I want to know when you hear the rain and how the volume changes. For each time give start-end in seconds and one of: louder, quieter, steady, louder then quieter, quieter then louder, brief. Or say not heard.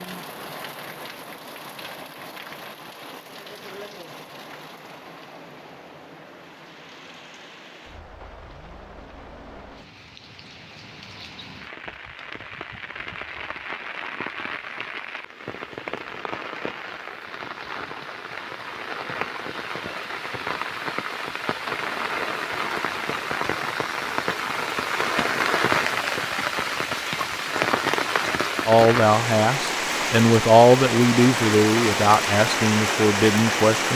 0.0-33.9 louder.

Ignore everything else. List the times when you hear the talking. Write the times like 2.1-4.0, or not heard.
28.6-33.9.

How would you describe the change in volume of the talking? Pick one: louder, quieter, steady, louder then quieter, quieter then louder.
louder then quieter.